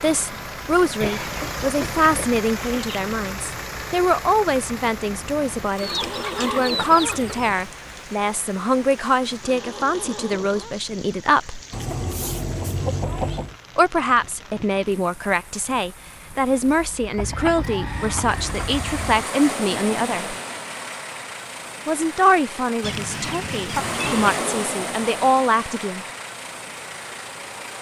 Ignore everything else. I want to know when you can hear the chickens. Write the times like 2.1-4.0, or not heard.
1.0-3.0, 5.8-7.5, 11.7-13.6, 17.1-19.2, 22.8-24.4.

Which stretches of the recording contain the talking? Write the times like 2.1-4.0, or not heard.
0.0-11.6, 13.8-20.4, 21.9-26.1.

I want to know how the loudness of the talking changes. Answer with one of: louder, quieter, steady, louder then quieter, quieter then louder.
steady.